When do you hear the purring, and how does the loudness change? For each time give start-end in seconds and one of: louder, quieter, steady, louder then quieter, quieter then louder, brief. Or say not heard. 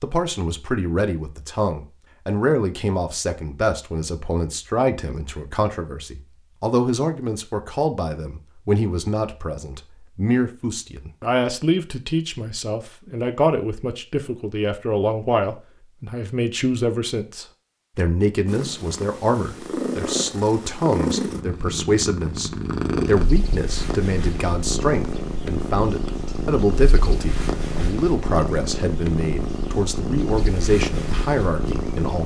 18.4-32.2 steady.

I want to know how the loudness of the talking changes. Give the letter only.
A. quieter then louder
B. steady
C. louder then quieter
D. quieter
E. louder
B.